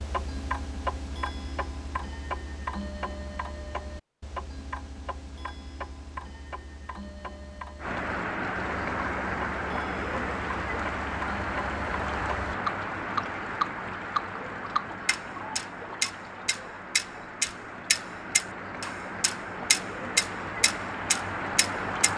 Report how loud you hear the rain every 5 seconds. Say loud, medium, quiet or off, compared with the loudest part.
off, loud, loud, medium, loud.